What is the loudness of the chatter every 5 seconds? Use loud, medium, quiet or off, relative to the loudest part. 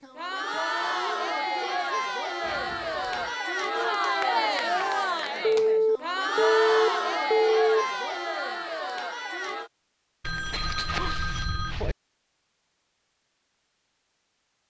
loud, loud, off.